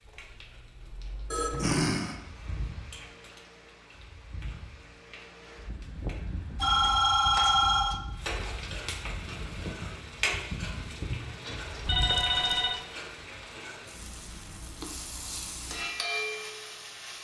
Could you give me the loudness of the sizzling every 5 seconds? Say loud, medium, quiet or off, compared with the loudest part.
quiet, medium, loud, loud.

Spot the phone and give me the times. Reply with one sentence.
You can hear the phone from 1.3 to 2.1 s, from 6.6 to 8.0 s and from 11.8 to 12.8 s.